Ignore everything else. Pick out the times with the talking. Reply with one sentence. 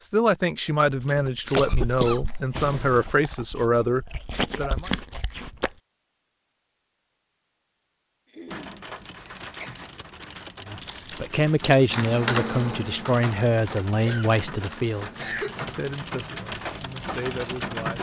The talking can be heard from 0.0 to 4.9 s and from 10.7 to 17.9 s.